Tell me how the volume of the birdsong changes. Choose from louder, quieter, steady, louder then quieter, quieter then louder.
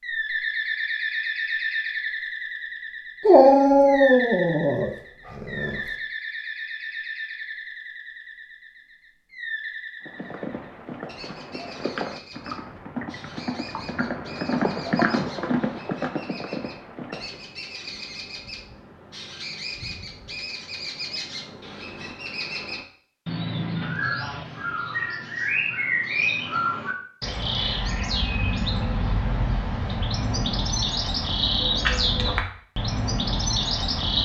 quieter then louder.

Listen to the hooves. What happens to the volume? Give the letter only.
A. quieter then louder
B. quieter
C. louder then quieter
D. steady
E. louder
C.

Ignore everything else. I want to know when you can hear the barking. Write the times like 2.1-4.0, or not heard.
3.2-5.8.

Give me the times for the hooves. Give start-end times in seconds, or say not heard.
10.1-17.4.